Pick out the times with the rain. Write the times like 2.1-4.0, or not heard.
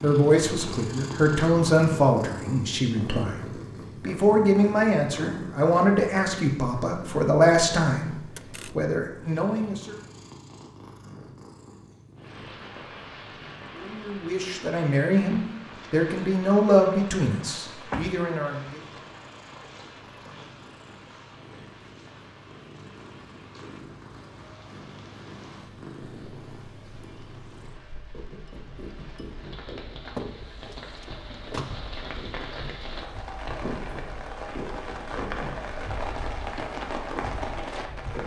12.2-38.2.